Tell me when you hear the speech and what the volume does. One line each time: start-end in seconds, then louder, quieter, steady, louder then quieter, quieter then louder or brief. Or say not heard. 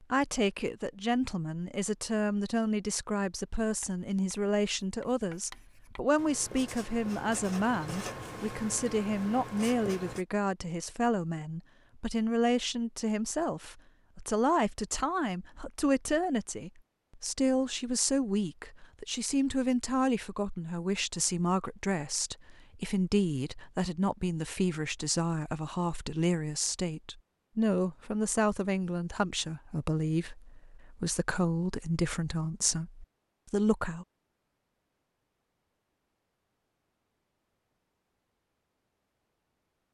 0.0-34.0 steady.